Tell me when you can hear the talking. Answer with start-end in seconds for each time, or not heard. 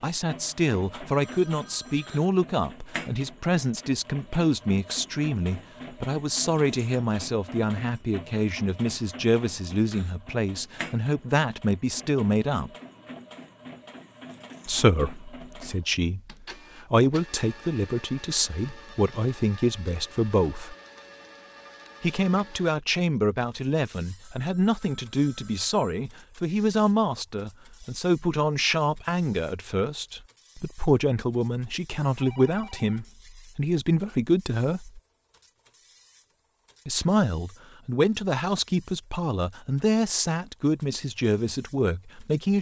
0.0-12.7, 14.7-20.8, 22.0-35.0, 36.9-42.5.